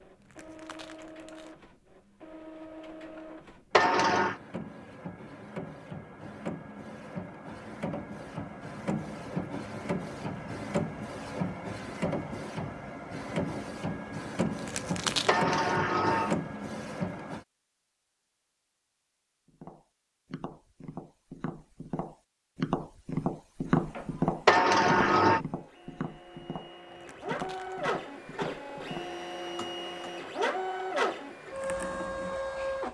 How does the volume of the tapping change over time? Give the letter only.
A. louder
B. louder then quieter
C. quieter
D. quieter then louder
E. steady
B.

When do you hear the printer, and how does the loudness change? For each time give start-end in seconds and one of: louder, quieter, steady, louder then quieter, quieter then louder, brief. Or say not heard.
0.0-17.4 louder
23.6-32.8 louder.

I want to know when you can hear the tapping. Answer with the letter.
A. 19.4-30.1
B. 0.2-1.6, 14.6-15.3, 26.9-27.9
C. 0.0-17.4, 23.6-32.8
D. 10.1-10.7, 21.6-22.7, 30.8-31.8
A.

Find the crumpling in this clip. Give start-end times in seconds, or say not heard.
0.2-1.6, 14.6-15.3, 26.9-27.9.